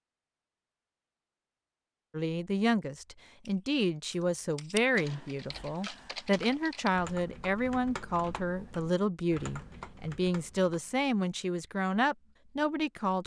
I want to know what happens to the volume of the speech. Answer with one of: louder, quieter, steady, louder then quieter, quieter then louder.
steady.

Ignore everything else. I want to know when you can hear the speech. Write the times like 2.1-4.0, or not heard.
2.1-13.2.